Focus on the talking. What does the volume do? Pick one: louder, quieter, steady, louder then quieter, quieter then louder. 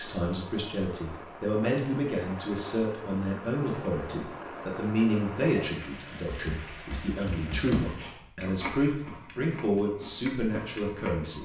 steady.